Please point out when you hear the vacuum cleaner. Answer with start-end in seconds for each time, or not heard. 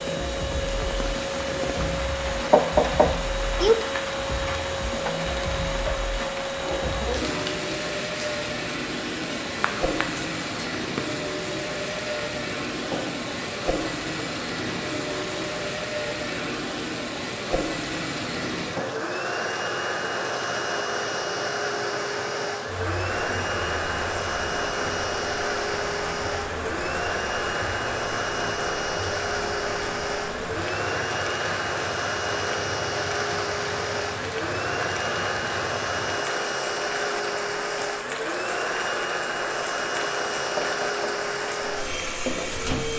0.0-42.9.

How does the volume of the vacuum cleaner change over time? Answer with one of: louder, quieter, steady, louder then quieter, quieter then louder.
steady.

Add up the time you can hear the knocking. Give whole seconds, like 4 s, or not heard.
2 s.